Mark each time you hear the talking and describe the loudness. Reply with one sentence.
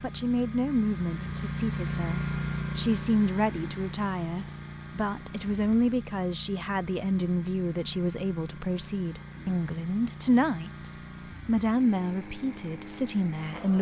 You can hear the talking from 0.0 to 13.7 s, at a steady volume.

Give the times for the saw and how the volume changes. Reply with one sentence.
You can't hear the saw here.